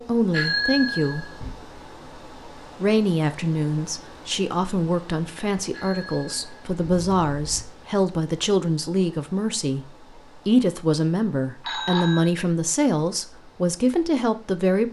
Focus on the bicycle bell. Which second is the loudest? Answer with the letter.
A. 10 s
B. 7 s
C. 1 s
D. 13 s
C.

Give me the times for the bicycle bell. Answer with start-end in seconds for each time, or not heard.
0.3-1.6, 5.7-7.7, 11.7-12.3.